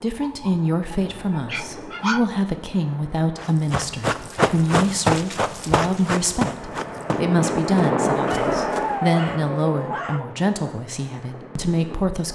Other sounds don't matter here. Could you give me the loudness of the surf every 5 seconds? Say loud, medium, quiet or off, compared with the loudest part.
quiet, loud, quiet.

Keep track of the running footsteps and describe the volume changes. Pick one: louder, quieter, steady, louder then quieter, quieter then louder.
quieter.